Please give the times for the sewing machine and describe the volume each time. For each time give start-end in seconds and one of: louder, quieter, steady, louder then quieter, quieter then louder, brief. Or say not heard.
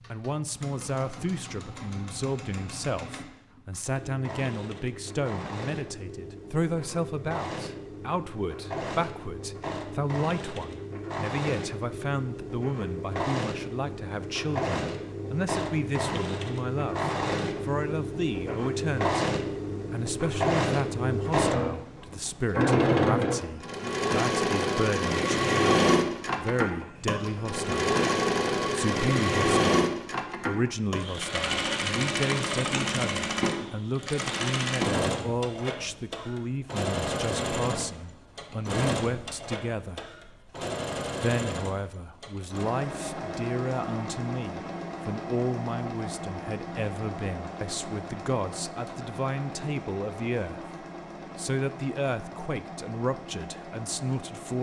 0.0-54.5 louder then quieter.